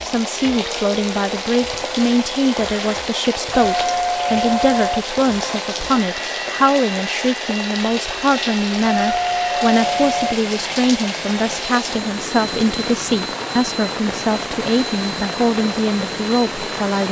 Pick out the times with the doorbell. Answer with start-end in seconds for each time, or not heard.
3.6-5.0, 9.0-10.3.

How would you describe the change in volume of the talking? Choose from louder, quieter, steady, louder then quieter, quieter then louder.
steady.